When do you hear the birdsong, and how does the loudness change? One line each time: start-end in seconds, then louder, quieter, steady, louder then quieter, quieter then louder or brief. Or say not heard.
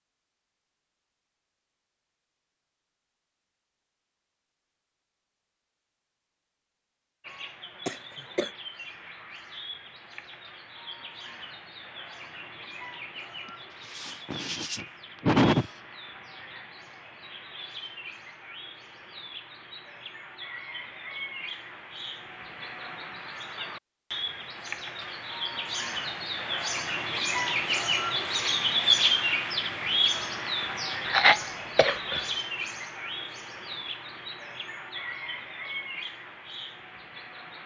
7.2-37.6 louder then quieter.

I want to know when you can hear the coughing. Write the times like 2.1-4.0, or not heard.
7.8-8.5, 13.8-15.7, 31.1-32.2.